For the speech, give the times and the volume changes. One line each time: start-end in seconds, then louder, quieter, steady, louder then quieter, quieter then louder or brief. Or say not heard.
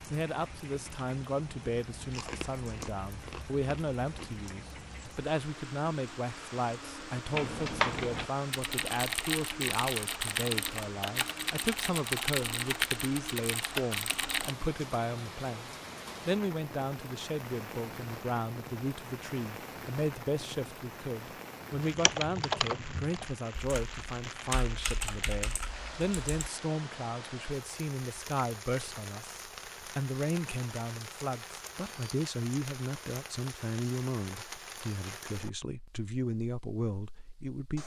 0.0-37.8 steady.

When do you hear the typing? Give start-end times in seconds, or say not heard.
7.3-14.6, 21.9-26.5.